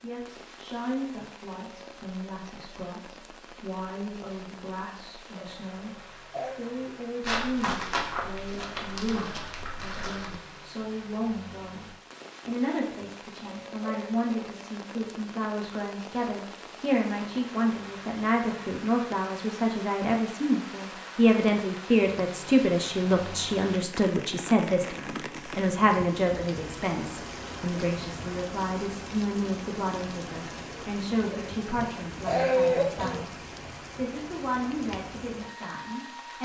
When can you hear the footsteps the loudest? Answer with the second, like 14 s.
8 s.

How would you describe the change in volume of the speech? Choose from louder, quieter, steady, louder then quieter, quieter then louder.
louder then quieter.